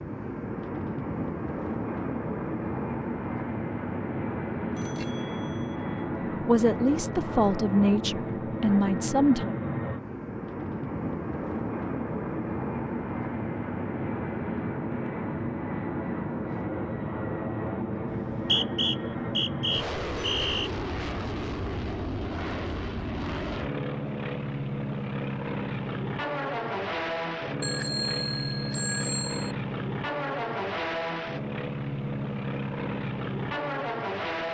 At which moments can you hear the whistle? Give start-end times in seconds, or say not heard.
18.1-20.7.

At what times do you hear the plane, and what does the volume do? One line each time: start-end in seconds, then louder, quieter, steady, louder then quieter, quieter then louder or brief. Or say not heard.
0.0-34.4 steady.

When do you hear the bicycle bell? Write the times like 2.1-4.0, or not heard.
4.8-5.8, 20.2-20.6, 27.6-29.6.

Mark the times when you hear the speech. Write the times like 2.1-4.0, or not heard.
6.4-9.6.